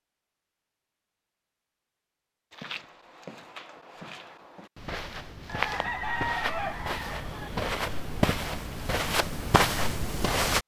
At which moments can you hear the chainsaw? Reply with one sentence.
The chainsaw can't be heard in this clip.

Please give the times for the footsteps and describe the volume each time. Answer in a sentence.
The footsteps can be heard from 2.5 to 10.6 s, getting louder.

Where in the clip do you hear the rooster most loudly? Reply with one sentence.
The volume of the rooster peaks at 6 seconds.